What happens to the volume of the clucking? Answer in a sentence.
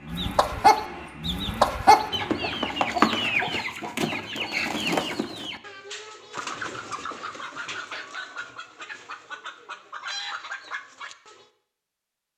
The volume of the clucking goes down.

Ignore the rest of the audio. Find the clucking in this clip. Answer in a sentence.
You can hear the clucking from 0.1 to 11.4 s.